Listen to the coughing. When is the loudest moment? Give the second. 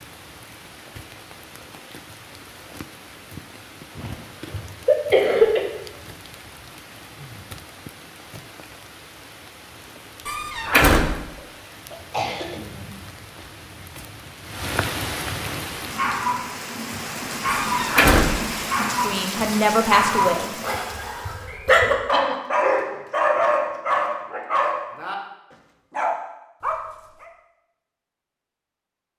5 s.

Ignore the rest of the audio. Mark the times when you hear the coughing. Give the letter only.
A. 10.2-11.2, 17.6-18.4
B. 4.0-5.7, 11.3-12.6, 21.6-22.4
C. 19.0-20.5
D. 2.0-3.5
B.